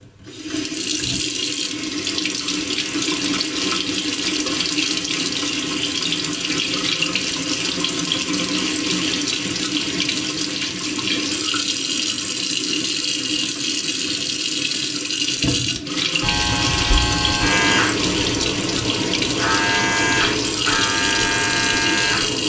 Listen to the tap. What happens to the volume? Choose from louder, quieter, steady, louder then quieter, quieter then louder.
steady.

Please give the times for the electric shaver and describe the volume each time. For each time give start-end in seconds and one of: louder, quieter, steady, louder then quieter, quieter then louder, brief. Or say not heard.
16.2-22.4 steady.